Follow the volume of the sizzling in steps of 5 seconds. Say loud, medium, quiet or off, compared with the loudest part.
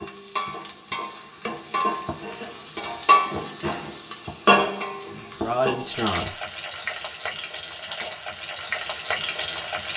loud, medium.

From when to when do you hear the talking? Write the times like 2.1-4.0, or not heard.
5.0-6.3.